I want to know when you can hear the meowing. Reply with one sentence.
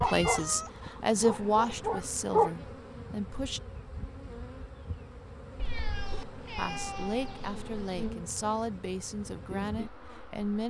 You can hear the meowing from 0.1 to 0.7 s and from 5.5 to 8.2 s.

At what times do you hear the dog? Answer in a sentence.
You can hear the dog from 0.0 to 2.5 s.